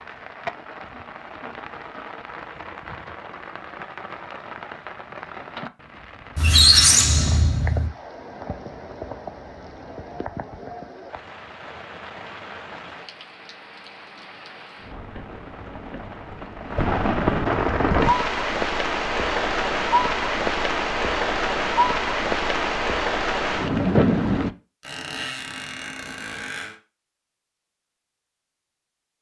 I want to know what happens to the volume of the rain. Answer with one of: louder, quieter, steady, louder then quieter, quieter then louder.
louder.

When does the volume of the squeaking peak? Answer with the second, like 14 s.
7 s.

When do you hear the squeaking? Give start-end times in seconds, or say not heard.
6.3-7.9, 24.8-26.8.